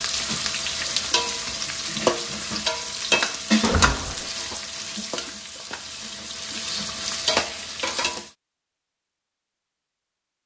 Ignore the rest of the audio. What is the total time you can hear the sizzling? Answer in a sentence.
You can hear the sizzling for 8 seconds altogether.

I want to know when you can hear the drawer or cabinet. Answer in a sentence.
The drawer or cabinet can be heard from 3.6 to 4.3 s.